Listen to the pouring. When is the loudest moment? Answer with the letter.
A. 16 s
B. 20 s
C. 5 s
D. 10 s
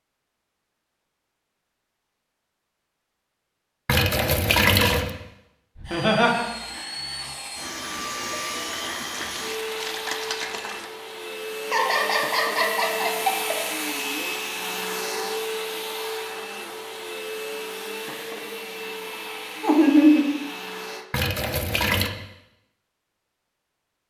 C.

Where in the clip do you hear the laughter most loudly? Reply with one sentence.
The loudest moment of the laughter is at 20 seconds.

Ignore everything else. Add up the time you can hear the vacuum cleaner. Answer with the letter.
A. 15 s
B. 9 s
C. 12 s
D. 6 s
A.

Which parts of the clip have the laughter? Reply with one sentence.
You can hear the laughter from 5.8 to 6.5 s, from 11.7 to 13.6 s and from 19.6 to 20.2 s.